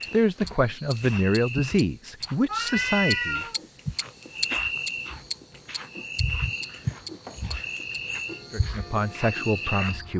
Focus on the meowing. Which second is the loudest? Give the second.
3 s.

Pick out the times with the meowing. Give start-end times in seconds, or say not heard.
2.5-3.6, 6.8-8.0.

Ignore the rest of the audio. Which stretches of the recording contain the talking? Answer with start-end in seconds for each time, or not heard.
0.1-3.5, 8.5-10.1.